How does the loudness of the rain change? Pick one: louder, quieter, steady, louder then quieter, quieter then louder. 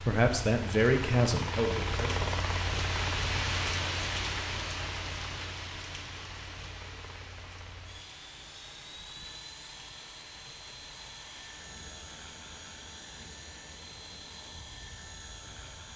quieter.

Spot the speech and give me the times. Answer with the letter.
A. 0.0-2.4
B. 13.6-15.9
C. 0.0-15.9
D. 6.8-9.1
A.